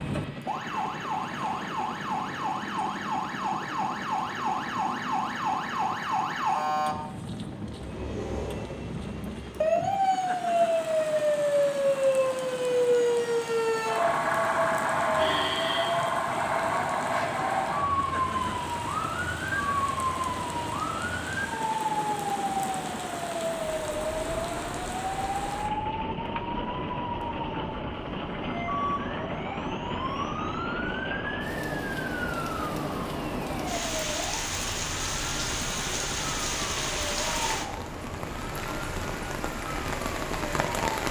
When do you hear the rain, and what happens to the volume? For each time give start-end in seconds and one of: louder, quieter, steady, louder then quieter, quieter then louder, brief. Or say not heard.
0.0-41.0 louder.